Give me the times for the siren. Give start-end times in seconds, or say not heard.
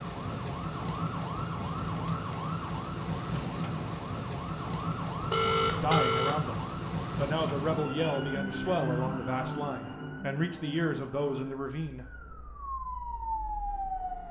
0.0-14.2.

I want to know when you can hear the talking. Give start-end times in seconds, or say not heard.
5.8-12.1.